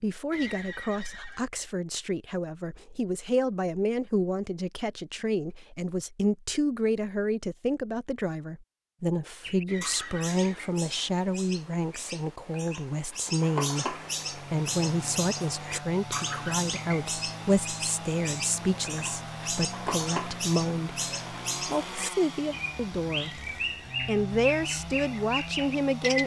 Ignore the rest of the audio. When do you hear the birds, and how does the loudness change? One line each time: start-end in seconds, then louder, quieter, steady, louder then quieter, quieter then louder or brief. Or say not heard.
9.4-26.2 louder.